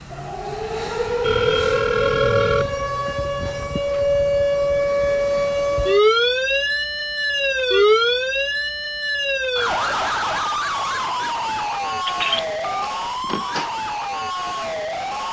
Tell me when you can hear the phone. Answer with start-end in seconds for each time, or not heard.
1.2-2.8, 12.1-13.7.